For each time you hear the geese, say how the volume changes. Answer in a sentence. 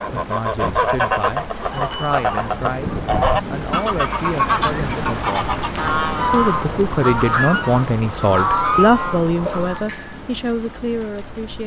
You can hear the geese from 0.0 to 9.8 s, at a steady volume.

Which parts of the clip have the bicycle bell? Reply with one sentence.
You can hear the bicycle bell from 1.7 to 2.1 s and from 9.4 to 10.2 s.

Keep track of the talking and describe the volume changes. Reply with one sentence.
The volume of the talking goes up, then down.